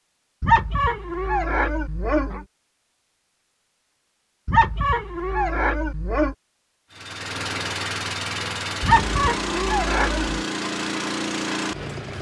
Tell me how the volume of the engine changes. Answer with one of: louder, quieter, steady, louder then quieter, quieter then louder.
steady.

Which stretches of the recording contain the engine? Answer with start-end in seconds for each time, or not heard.
6.9-12.1.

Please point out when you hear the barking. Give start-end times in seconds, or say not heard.
0.4-2.5, 4.5-6.3, 8.8-10.4.